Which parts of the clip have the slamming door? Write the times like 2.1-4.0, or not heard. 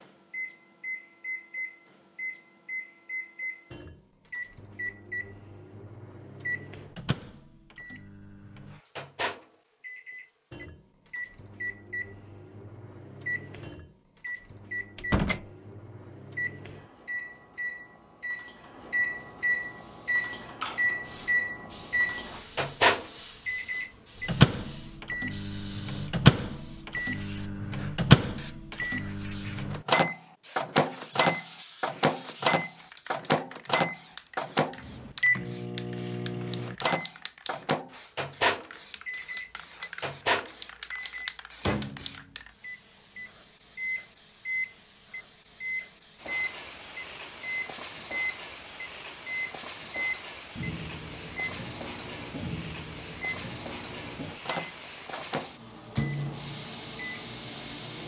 14.9-15.4.